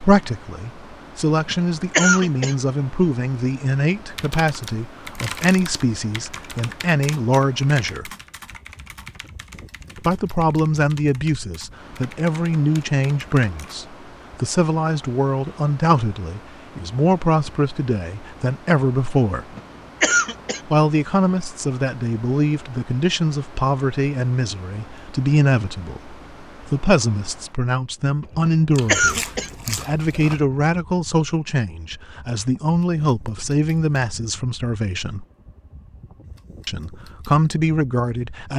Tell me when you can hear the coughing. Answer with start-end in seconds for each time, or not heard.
1.4-2.5, 19.4-20.6, 28.4-29.5.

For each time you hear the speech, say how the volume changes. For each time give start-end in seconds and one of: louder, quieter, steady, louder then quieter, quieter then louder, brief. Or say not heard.
0.0-8.1 steady
10.1-19.4 steady
20.6-35.2 steady
36.6-38.5 brief.